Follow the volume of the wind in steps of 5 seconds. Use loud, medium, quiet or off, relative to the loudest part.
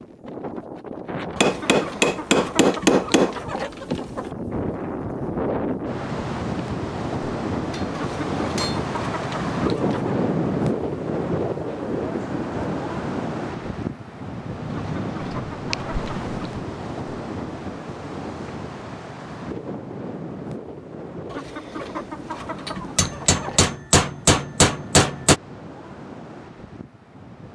medium, loud, loud, medium, medium, quiet.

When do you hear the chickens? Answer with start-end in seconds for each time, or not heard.
1.4-4.3, 7.9-10.2, 14.7-16.3, 21.3-23.6.